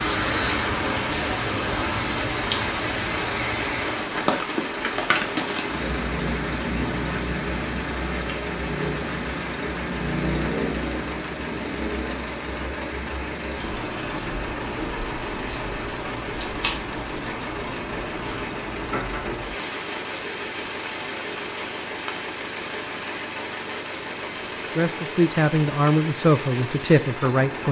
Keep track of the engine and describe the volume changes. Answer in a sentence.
The volume of the engine stays about the same.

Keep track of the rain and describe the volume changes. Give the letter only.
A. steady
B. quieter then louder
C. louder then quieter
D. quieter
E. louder
D.